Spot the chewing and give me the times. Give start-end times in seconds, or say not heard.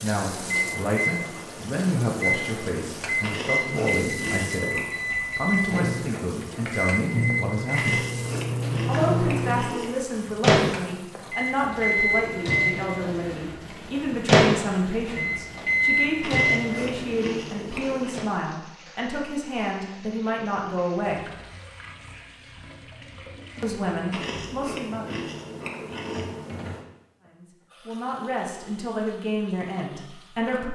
3.2-4.9, 7.8-9.9, 16.2-18.2, 24.1-26.9.